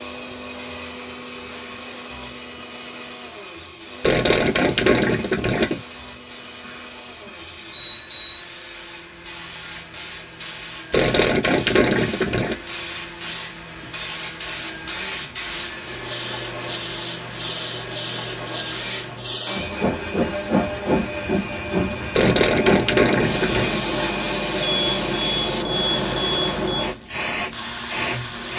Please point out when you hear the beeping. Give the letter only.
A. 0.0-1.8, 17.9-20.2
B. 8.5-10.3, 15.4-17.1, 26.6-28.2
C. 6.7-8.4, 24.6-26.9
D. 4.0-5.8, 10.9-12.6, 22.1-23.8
C.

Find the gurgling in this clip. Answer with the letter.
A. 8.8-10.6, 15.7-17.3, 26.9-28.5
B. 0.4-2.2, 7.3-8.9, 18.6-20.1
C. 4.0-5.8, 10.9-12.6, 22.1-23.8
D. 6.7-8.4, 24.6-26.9
C.